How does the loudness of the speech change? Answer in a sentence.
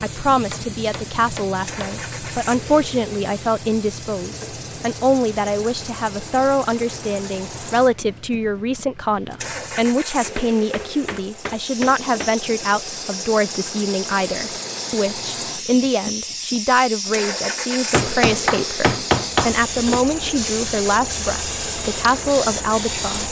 The volume of the speech stays about the same.